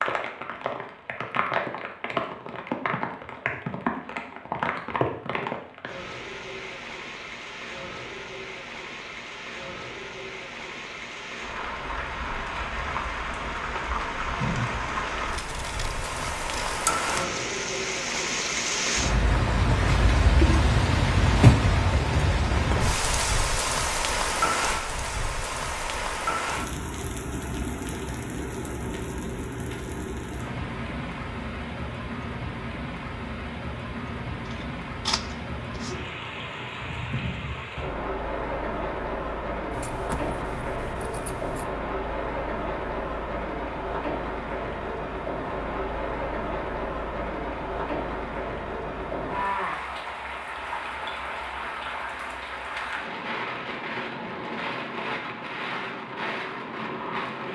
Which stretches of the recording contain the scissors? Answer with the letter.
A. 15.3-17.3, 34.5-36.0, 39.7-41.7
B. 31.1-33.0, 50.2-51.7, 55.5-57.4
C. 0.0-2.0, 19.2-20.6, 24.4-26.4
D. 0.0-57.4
A.